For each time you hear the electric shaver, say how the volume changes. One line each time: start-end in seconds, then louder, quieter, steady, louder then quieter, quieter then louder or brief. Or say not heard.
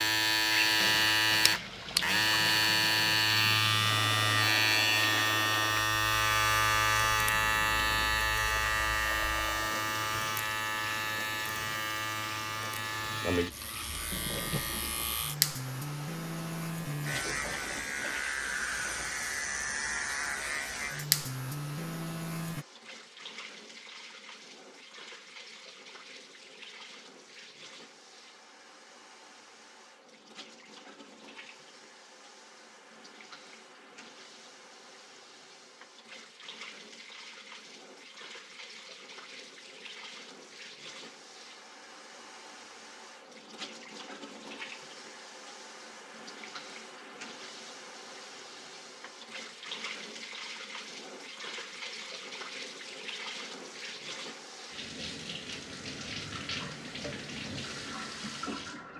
0.0-22.6 quieter.